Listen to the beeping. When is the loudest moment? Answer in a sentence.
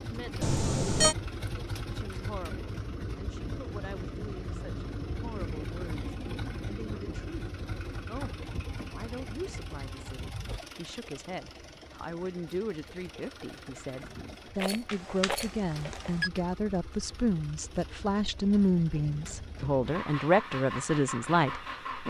The volume of the beeping peaks at 1 second.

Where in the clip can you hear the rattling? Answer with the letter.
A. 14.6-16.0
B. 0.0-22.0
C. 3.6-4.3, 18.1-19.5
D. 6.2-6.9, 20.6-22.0
A.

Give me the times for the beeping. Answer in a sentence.
You can hear the beeping from 0.4 to 1.1 s and from 14.8 to 16.3 s.